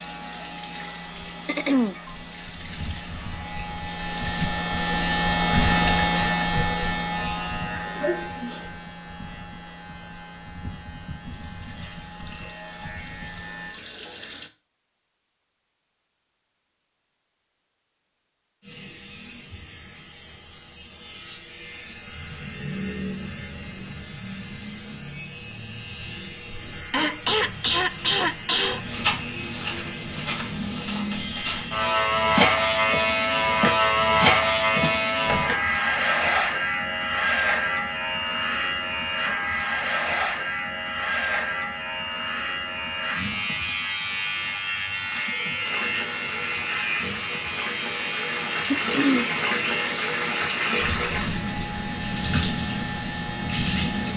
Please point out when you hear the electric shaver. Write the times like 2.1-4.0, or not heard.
0.0-13.8, 18.6-54.1.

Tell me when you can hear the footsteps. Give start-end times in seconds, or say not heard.
28.8-35.5.